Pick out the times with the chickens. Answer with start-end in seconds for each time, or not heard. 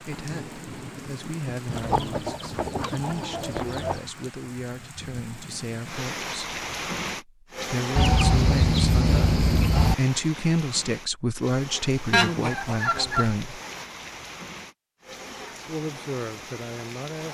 1.7-4.0, 8.0-9.9, 12.1-13.3.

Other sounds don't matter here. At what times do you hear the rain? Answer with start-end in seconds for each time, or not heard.
0.0-17.2.